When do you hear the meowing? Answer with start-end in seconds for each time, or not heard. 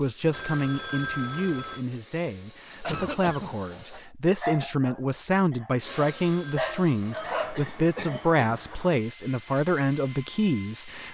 not heard.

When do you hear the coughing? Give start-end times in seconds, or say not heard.
2.8-3.5, 7.5-8.4.